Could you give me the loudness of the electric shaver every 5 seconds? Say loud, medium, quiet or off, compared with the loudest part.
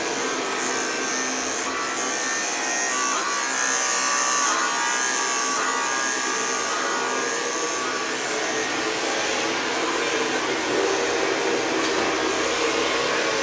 loud, loud, medium.